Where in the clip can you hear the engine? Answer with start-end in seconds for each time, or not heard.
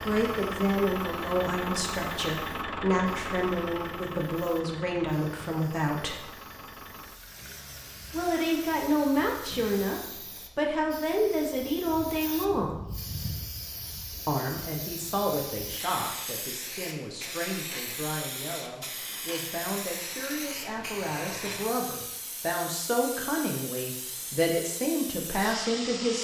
0.0-10.2.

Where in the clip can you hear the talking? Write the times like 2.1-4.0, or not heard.
0.1-6.2, 8.1-12.8, 14.2-26.2.